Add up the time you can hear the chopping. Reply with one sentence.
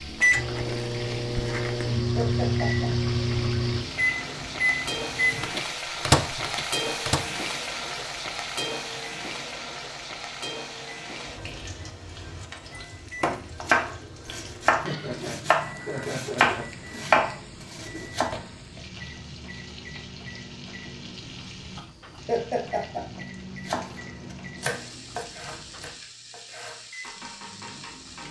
You can hear the chopping for 10 seconds altogether.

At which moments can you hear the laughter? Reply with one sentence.
You can hear the laughter from 2.1 to 3.1 s, from 14.8 to 17.2 s and from 22.2 to 23.2 s.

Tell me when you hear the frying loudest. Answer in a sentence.
The loudest moment of the frying is at 7 seconds.